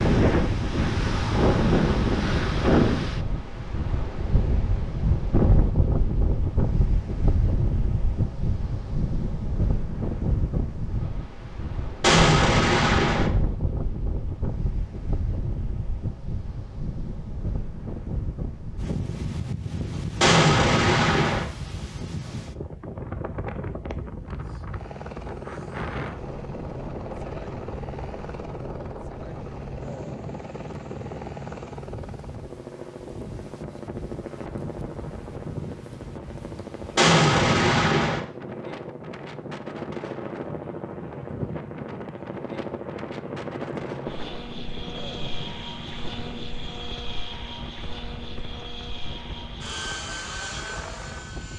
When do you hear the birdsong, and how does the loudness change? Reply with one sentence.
You can't hear the birdsong here.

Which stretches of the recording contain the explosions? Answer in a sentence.
The explosions can be heard from 12.0 to 13.3 s, from 20.2 to 21.4 s and from 37.0 to 38.2 s.